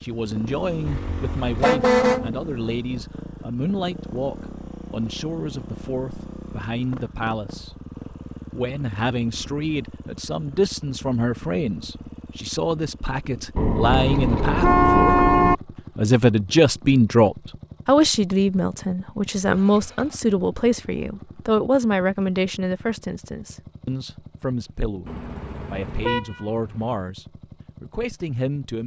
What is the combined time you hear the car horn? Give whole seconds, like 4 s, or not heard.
5 s.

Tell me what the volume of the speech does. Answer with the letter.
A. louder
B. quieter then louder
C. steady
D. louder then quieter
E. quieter
D.